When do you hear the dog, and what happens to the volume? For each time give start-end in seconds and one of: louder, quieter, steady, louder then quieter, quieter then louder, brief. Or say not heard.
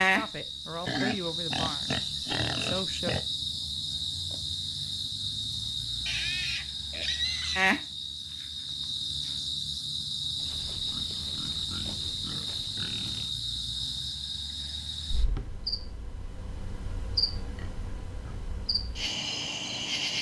not heard.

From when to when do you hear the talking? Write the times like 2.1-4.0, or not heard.
0.0-3.1.